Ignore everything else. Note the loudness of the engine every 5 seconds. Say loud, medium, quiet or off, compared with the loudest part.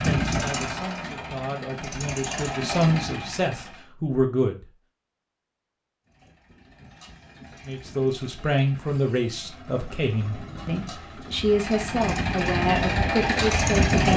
loud, quiet, loud.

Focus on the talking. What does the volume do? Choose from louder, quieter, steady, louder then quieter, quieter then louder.
louder.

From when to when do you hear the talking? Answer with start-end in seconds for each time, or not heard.
0.0-4.7, 7.7-14.1.